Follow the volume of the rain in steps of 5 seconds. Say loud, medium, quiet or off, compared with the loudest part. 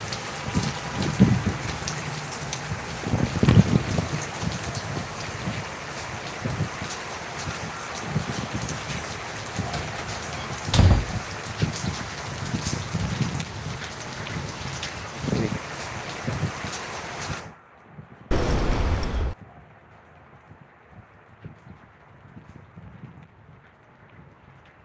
loud, medium, medium, medium, quiet.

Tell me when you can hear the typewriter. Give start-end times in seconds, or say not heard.
not heard.